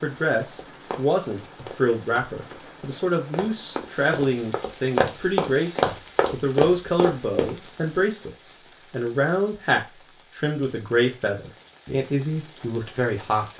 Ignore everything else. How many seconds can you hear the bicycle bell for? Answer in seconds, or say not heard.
2 s.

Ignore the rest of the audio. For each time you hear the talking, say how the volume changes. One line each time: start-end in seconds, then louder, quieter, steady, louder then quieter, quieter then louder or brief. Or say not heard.
0.0-13.5 steady.